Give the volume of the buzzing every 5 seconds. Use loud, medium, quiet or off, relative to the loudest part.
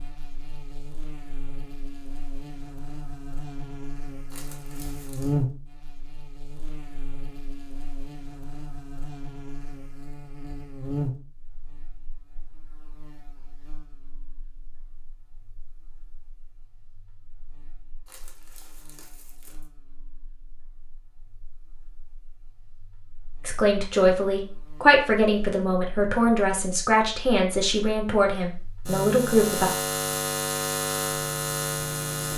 quiet, medium, medium, quiet, quiet, loud, loud.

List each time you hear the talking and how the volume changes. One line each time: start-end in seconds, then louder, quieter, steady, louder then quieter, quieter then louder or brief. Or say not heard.
23.4-29.7 steady.